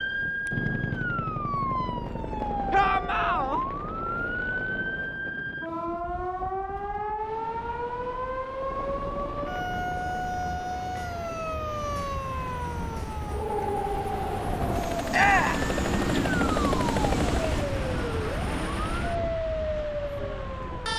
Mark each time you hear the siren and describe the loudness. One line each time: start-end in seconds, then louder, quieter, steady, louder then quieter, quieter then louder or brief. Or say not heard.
0.0-20.9 steady.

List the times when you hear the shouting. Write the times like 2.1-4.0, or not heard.
2.7-3.6, 15.1-15.7.